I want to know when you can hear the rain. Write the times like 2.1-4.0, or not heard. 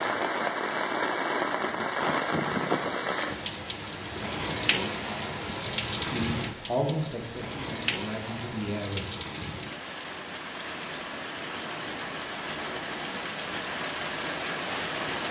0.0-15.2.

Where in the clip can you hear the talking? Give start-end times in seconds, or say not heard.
6.0-9.1.